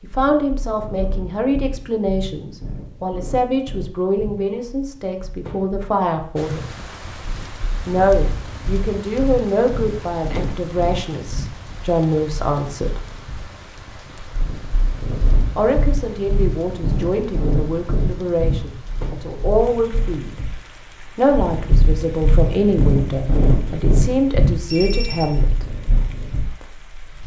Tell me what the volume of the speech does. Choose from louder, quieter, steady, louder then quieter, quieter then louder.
steady.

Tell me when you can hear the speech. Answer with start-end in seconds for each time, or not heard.
0.0-6.7, 7.8-13.1, 15.6-20.4, 21.1-25.8.